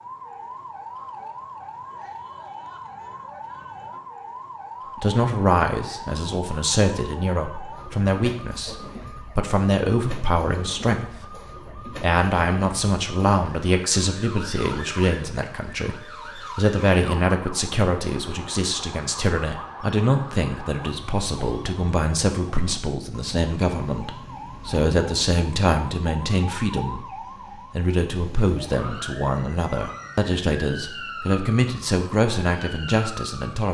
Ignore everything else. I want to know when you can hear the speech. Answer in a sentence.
The speech can be heard from 5.0 to 27.1 s and from 27.7 to 33.7 s.